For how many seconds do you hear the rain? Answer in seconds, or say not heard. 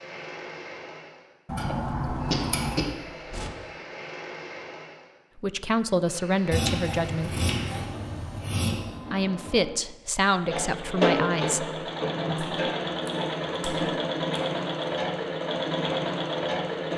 not heard.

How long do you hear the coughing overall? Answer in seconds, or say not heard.
2 s.